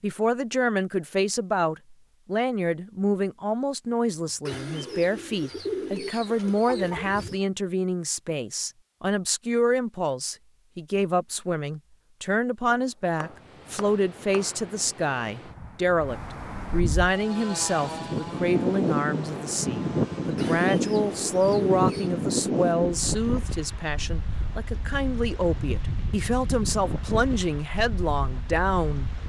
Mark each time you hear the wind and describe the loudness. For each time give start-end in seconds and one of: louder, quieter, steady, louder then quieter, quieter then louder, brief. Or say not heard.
13.2-29.2 louder then quieter.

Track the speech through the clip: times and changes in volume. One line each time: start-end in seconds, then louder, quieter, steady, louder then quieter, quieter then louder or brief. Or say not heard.
0.0-29.1 steady.